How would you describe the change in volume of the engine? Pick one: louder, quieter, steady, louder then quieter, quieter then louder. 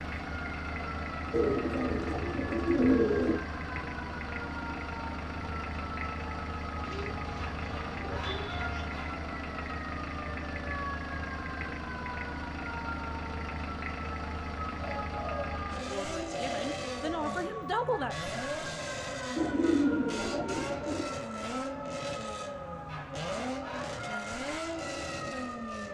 steady.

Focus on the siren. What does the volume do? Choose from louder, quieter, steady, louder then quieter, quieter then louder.
steady.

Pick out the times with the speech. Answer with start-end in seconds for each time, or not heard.
15.8-18.1.